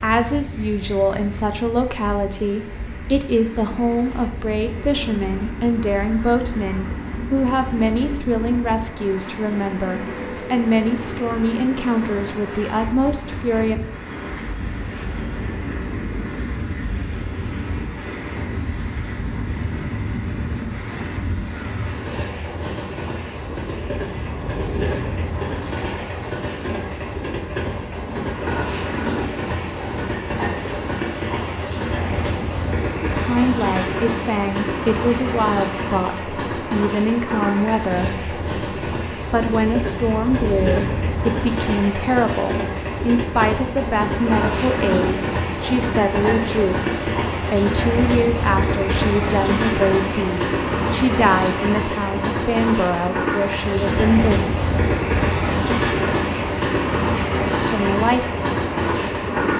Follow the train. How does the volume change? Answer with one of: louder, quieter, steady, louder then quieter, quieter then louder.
louder.